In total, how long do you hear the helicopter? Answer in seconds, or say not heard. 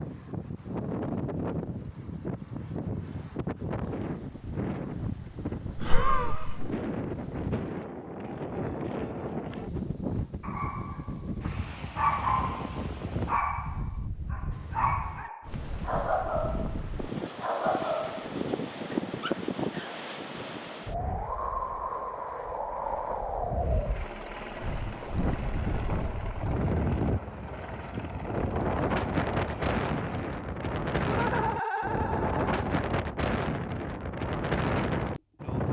7 s.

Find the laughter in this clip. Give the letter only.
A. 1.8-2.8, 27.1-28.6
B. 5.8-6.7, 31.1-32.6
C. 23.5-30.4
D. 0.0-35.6
B.